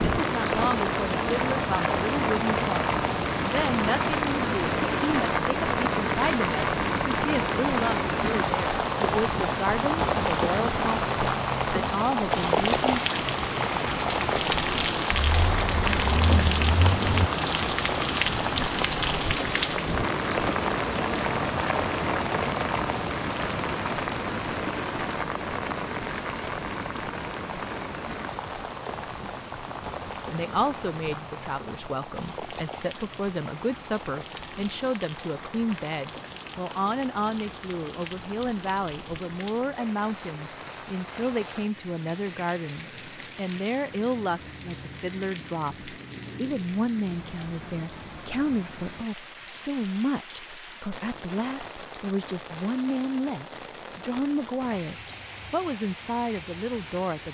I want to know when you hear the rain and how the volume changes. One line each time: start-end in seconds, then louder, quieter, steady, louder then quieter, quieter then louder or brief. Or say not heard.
0.0-57.2 quieter.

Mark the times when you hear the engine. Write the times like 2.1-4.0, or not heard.
15.1-17.3.